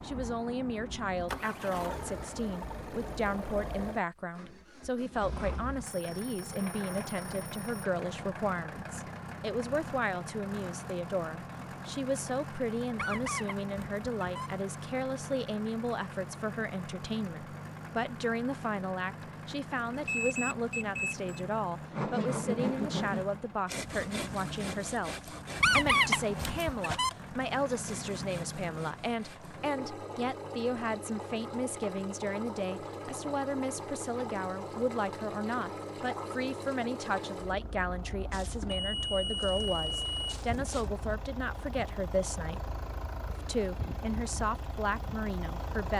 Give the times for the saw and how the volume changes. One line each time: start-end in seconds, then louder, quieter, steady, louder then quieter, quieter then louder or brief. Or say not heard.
21.9-29.8 quieter.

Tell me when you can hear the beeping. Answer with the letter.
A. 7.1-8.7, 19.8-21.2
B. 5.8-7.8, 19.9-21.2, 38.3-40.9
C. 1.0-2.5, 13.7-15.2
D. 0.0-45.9
B.